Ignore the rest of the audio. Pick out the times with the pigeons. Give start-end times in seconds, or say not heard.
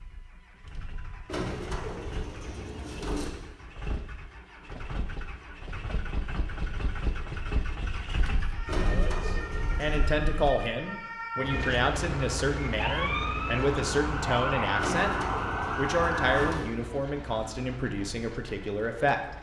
1.2-3.3, 8.7-10.2, 14.8-16.7.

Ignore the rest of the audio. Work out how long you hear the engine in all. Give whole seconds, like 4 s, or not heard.
19 s.